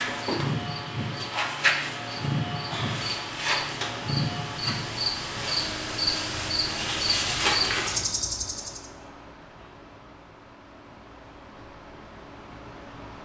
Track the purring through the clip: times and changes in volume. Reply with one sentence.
You can't hear the purring here.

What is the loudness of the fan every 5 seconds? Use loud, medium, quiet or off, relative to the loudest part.
loud, medium, quiet.